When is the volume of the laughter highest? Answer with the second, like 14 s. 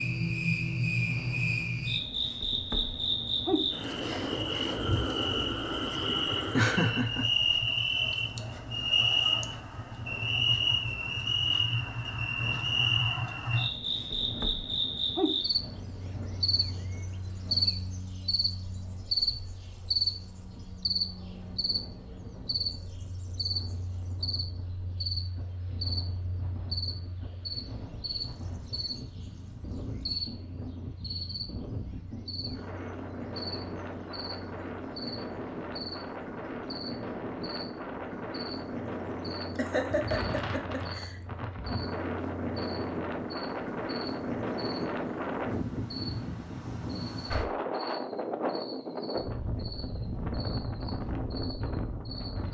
7 s.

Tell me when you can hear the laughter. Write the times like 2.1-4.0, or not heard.
6.5-7.3, 39.5-41.2.